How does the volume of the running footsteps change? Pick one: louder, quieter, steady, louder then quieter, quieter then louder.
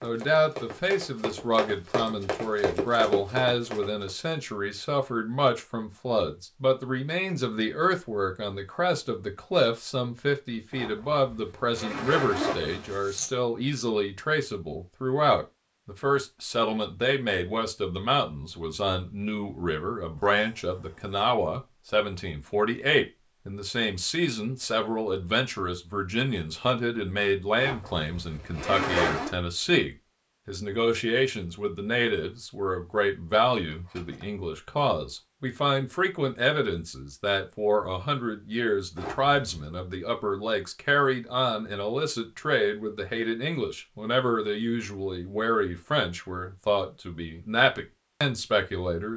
louder.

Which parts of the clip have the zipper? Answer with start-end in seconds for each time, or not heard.
10.7-13.3, 27.6-29.3, 39.0-39.6.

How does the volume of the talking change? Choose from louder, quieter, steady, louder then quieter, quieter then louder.
steady.